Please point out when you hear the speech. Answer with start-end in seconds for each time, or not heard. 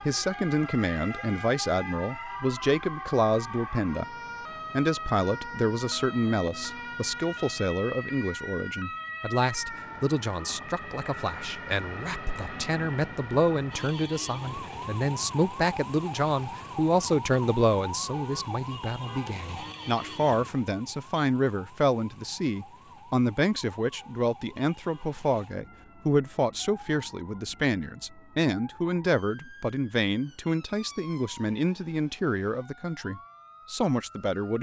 0.1-4.0, 4.8-34.5.